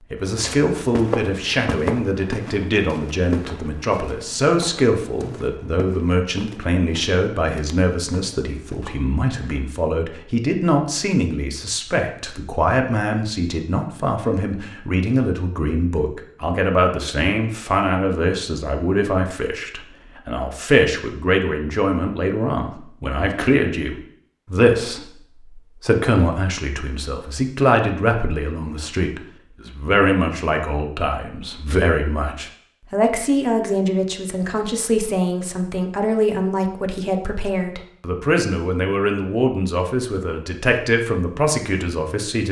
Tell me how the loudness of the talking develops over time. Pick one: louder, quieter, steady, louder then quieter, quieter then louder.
steady.